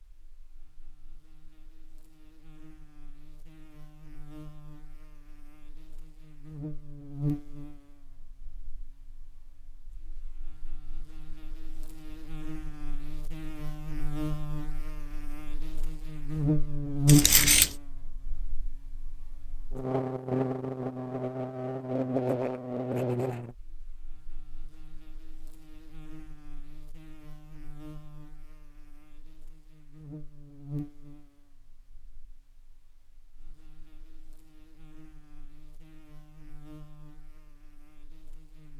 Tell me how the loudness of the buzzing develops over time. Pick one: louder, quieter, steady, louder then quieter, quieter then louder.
louder then quieter.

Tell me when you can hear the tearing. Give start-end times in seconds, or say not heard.
17.1-17.8.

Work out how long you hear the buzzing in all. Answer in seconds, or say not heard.
39 s.